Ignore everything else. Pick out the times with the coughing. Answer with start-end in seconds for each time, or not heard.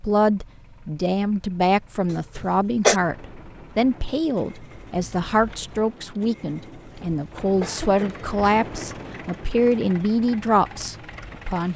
2.1-3.0, 7.5-8.3.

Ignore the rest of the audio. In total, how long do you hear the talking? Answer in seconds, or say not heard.
12 s.